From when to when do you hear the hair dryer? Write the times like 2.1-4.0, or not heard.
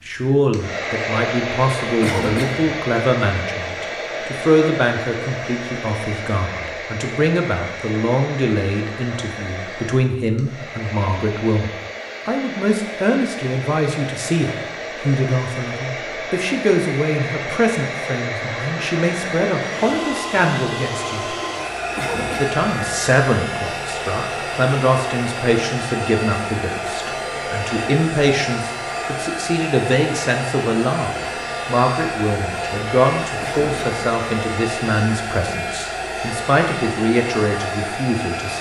0.0-38.5.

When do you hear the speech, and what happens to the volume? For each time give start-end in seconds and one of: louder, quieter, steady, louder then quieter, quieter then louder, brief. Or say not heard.
0.1-21.4 steady
22.4-38.5 steady.